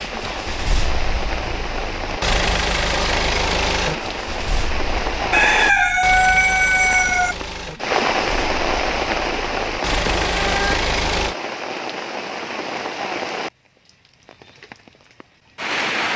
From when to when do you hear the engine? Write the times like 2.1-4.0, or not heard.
0.0-11.3.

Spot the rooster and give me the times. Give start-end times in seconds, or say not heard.
5.3-7.3.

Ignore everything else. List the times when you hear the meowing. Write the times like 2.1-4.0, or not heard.
10.0-10.8.